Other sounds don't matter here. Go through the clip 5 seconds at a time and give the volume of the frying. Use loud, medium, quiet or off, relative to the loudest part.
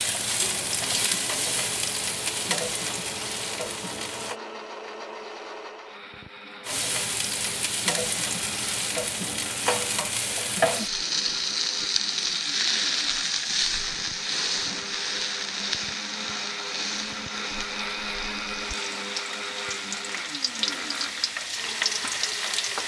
loud, loud, loud, medium, loud.